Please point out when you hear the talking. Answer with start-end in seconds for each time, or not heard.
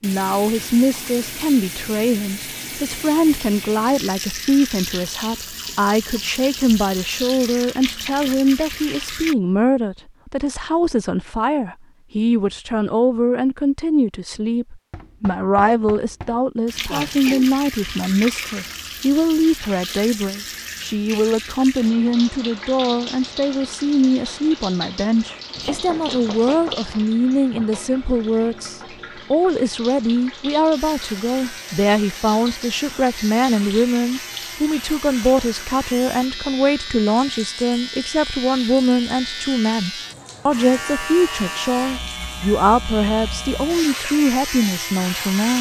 0.0-45.5.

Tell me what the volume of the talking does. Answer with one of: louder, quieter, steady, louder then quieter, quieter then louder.
steady.